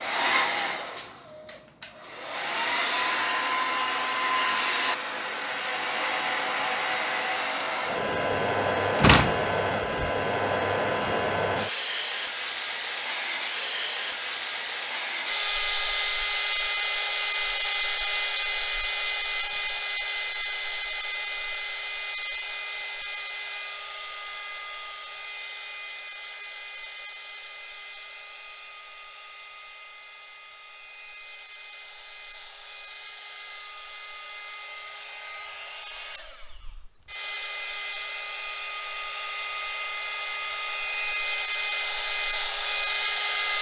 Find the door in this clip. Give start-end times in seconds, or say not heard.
8.9-10.1.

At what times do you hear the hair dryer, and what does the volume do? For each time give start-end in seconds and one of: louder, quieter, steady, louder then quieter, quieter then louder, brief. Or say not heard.
0.0-43.5 quieter then louder.